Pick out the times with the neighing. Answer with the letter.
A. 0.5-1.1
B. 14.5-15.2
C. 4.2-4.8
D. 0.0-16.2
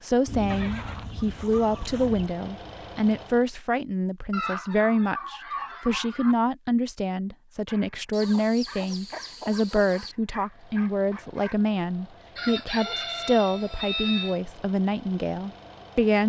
A.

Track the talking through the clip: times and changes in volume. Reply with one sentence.
You can hear the talking from 0.0 to 16.2 s, at a steady volume.